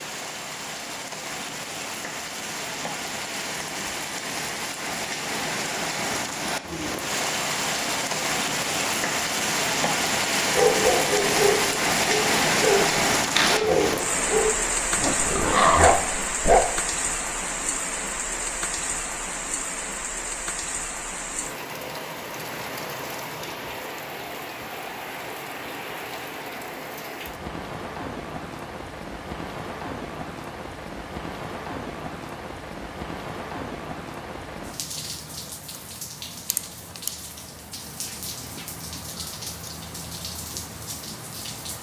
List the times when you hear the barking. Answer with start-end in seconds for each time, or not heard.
10.5-16.8.